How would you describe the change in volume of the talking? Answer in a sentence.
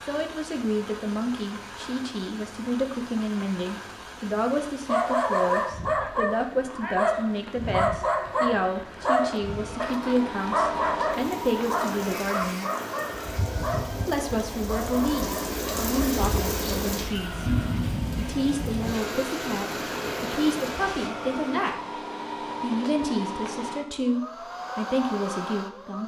The volume of the talking stays about the same.